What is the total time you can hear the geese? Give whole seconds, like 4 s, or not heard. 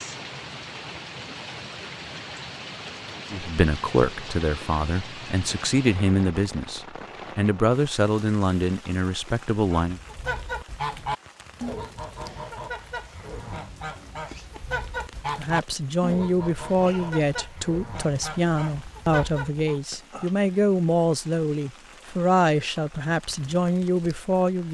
10 s.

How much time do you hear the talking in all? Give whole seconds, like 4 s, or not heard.
16 s.